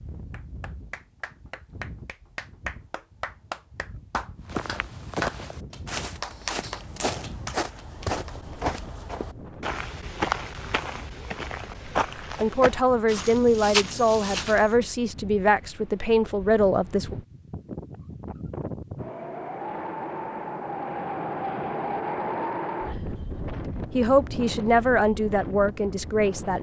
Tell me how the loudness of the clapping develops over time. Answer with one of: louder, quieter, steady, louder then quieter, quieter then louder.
louder then quieter.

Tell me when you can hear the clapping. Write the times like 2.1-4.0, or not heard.
0.3-8.6.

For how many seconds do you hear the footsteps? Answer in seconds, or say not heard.
10 s.